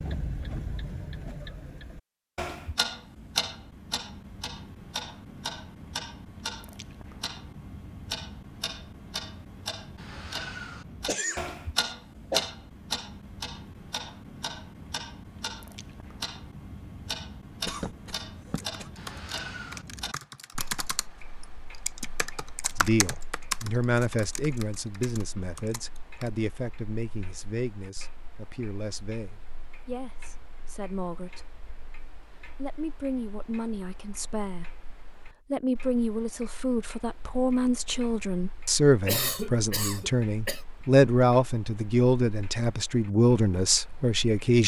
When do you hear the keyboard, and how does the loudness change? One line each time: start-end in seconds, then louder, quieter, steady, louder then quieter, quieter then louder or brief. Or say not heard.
18.6-26.3 louder then quieter.